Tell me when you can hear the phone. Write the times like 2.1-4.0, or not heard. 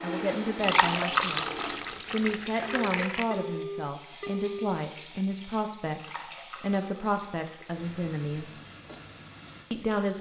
2.6-4.8.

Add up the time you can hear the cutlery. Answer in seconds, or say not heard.
not heard.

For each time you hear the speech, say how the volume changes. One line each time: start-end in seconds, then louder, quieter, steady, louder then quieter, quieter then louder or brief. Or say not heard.
0.0-1.4 brief
2.1-8.6 steady
9.7-10.1 brief.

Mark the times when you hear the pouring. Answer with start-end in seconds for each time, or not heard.
0.6-3.2, 6.0-7.8.